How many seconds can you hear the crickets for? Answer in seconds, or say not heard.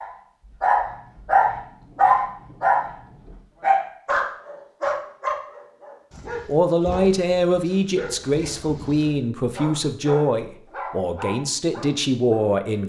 not heard.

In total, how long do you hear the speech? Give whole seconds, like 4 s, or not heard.
6 s.